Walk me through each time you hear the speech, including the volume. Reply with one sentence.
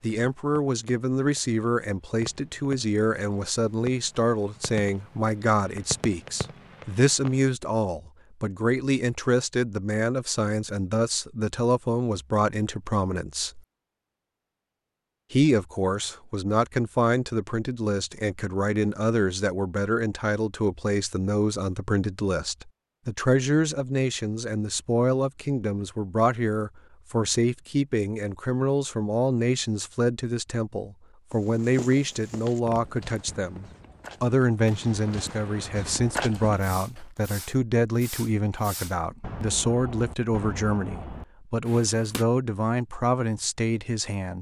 The speech can be heard from 0.0 to 13.6 s, at a steady volume; and from 15.3 to 44.3 s, at a steady volume.